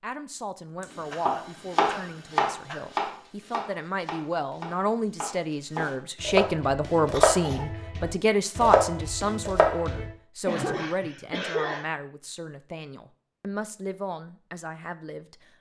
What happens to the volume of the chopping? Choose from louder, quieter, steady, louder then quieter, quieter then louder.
quieter then louder.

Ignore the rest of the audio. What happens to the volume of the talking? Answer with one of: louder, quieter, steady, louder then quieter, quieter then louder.
louder then quieter.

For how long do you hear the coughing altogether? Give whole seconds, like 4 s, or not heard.
4 s.